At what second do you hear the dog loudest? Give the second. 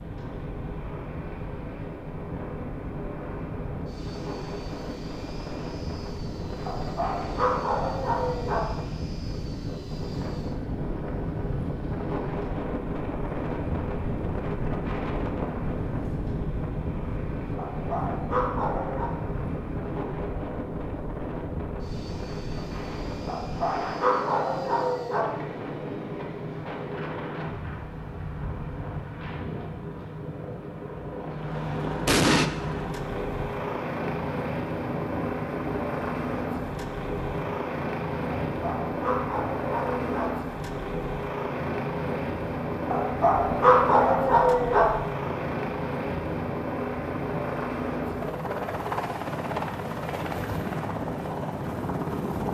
44 s.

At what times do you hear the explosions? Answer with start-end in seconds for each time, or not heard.
32.0-32.5.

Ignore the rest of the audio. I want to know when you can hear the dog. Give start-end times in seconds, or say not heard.
6.7-8.7, 17.6-19.1, 23.2-25.3, 38.5-40.3, 42.9-44.9.